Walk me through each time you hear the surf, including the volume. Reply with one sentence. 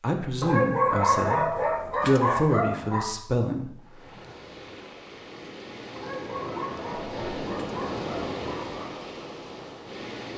You can hear the surf from 3.8 to 10.3 s, getting louder then quieter.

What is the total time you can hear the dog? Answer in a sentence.
The dog can be heard for 6 seconds in total.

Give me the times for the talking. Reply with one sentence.
You can hear the talking from 0.0 to 3.9 s.